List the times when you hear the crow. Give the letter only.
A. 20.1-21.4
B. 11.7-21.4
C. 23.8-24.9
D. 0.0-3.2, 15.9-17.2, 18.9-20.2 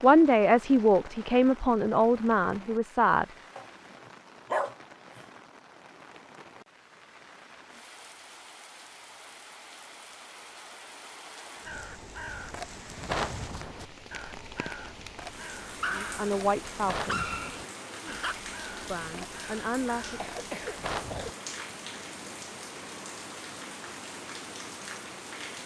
B.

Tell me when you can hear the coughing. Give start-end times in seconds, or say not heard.
20.1-21.4.